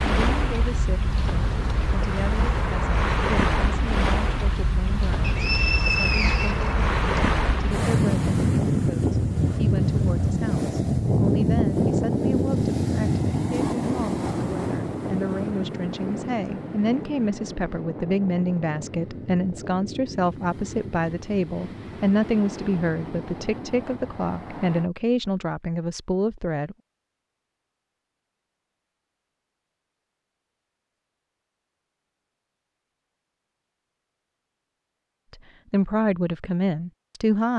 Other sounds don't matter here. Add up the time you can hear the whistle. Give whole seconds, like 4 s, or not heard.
2 s.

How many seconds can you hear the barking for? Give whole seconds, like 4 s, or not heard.
not heard.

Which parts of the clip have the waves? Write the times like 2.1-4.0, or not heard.
0.0-24.9.